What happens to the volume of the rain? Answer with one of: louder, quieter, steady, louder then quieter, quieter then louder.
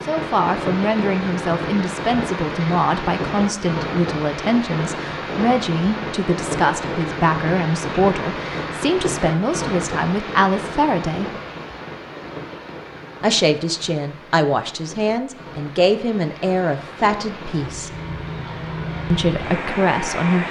quieter then louder.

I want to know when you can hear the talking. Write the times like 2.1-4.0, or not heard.
0.1-11.3, 13.2-17.9, 19.1-20.4.